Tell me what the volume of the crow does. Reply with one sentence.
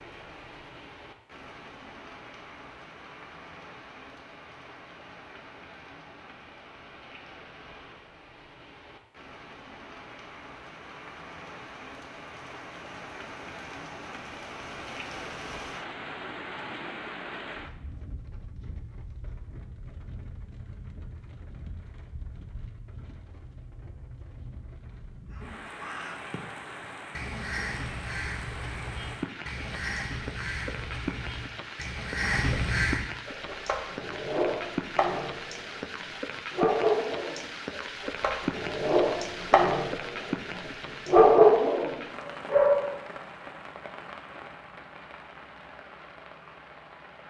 The volume of the crow goes up.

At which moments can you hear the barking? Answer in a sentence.
You can hear the barking from 33.2 to 35.7 s, from 36.5 to 40.2 s and from 41.0 to 42.9 s.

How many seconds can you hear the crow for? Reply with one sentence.
The crow can be heard for 8 seconds in total.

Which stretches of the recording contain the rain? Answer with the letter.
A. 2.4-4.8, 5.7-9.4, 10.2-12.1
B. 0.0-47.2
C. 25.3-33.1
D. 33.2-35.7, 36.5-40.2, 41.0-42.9
B.